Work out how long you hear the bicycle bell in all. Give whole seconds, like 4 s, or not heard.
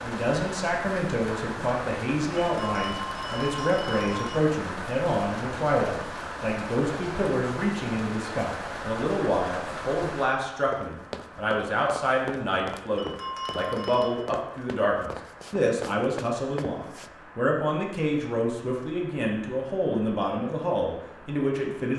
3 s.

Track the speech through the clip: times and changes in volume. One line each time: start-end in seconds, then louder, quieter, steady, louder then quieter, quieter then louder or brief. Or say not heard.
0.0-21.9 steady.